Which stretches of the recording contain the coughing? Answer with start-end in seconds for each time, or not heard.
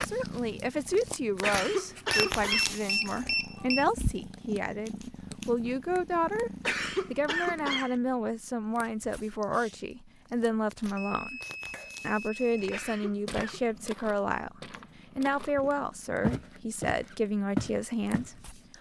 1.4-2.8, 6.7-8.0, 12.7-13.6.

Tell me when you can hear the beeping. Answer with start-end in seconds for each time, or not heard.
2.1-3.9, 10.9-12.8.